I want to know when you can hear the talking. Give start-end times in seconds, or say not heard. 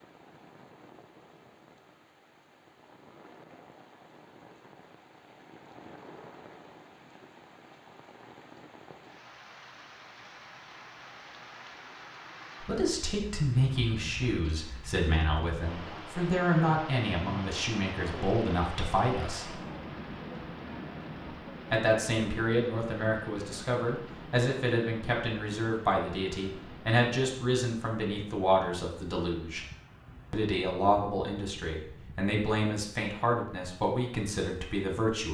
12.6-19.6, 21.7-29.6, 30.3-35.2.